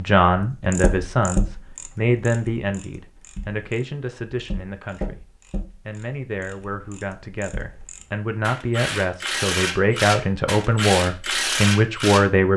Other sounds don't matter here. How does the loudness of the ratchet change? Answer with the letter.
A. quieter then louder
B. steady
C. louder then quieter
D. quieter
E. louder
A.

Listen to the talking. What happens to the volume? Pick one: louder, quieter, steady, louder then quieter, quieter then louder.
quieter then louder.